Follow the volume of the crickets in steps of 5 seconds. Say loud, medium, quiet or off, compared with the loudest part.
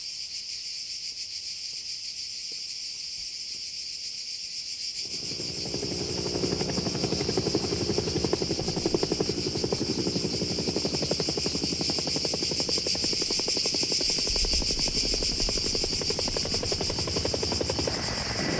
medium, medium, loud, loud.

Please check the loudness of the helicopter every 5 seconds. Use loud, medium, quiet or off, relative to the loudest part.
off, loud, loud, loud.